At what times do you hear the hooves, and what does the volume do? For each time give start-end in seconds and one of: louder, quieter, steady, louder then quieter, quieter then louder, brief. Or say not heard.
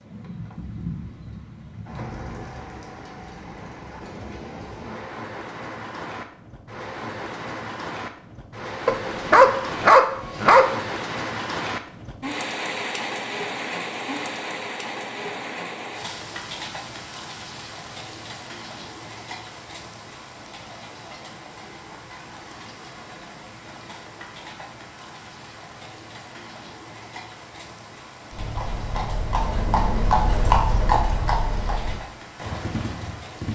28.3-33.5 louder then quieter.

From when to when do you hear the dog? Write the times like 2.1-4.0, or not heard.
8.8-10.7.